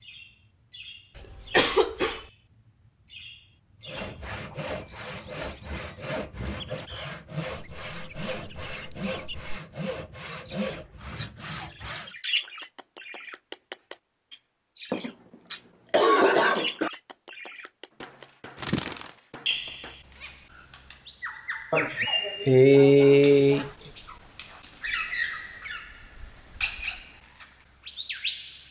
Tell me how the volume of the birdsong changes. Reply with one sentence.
The volume of the birdsong goes up.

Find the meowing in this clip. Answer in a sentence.
You can't hear the meowing here.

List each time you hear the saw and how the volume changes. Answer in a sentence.
You can hear the saw from 3.9 to 12.1 s, at a steady volume.